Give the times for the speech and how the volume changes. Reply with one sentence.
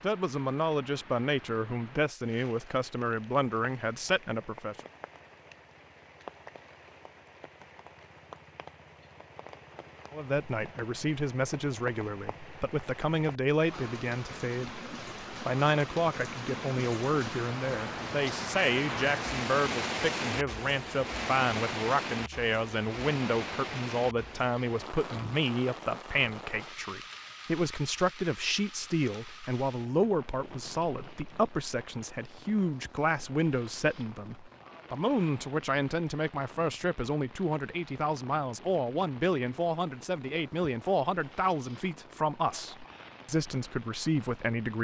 The speech can be heard from 0.0 to 4.8 s, at a steady volume; and from 10.1 to 44.7 s, at a steady volume.